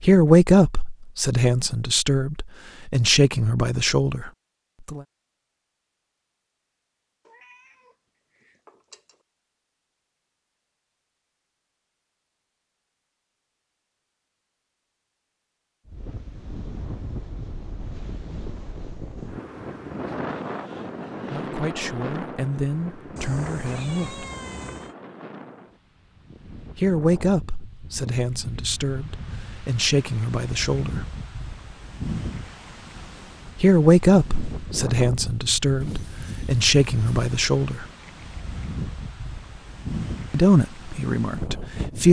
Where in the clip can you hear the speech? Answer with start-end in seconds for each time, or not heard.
0.0-5.0, 21.2-24.2, 26.8-31.1, 33.5-37.9, 40.3-42.0.